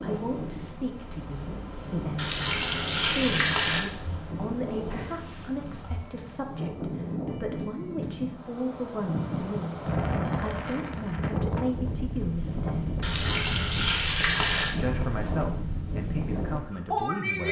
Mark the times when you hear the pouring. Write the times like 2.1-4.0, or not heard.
2.1-3.9, 13.0-14.8.